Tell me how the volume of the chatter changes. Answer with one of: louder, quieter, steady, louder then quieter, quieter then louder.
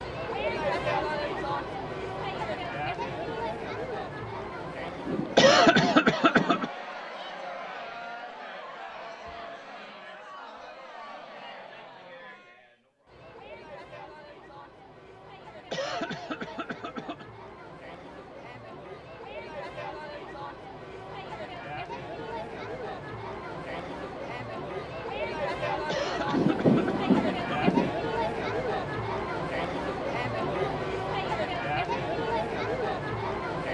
quieter then louder.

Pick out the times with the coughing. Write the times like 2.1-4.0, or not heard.
5.3-6.7, 15.7-17.2, 25.9-27.8.